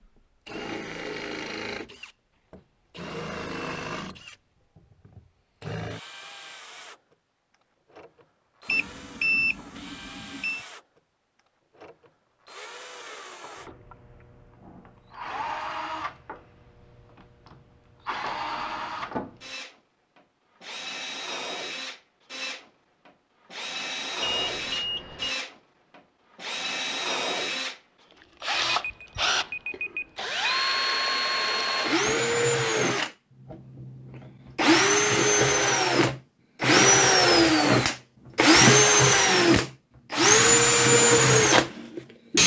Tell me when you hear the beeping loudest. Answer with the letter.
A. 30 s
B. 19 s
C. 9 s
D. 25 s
C.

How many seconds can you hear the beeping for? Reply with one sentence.
You can hear the beeping for 5 seconds altogether.